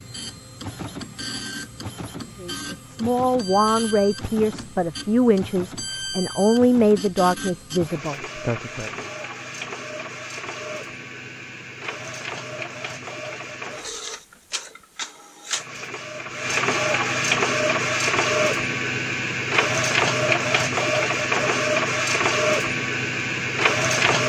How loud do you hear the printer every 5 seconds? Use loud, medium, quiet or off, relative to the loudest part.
quiet, quiet, quiet, loud, loud.